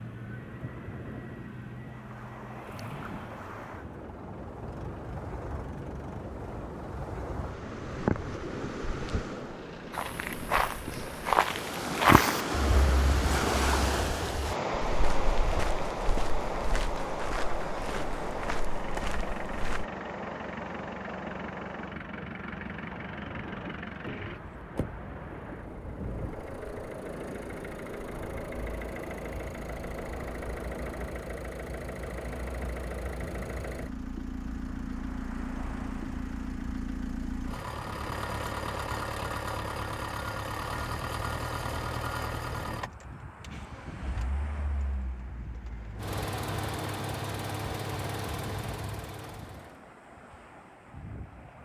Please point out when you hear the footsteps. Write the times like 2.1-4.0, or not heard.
9.9-19.9.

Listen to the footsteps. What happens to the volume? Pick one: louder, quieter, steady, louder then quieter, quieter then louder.
quieter.